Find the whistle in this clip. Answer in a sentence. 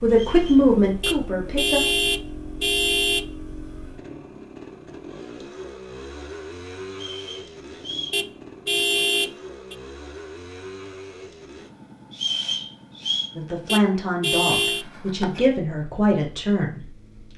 The whistle can be heard from 0.1 to 0.7 s, from 6.9 to 8.2 s and from 12.1 to 13.3 s.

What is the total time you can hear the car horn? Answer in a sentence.
The car horn can be heard for 5 seconds in total.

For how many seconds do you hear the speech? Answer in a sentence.
The speech can be heard for 5 seconds in total.